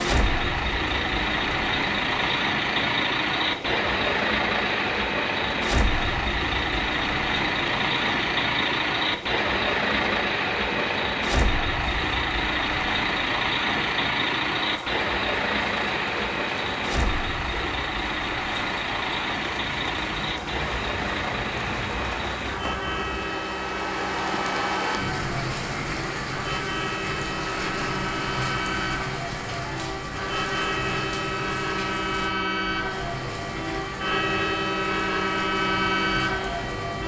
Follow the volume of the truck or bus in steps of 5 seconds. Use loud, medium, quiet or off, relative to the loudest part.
loud, loud, loud, loud, medium, medium, loud, loud.